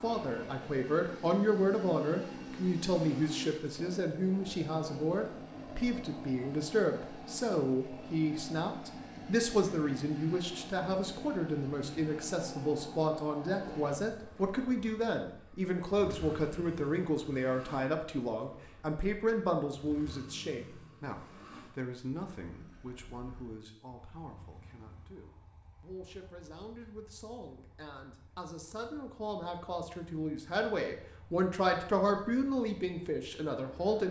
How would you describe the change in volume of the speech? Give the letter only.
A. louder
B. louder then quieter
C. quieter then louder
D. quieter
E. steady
C.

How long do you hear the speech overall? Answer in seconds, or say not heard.
34 s.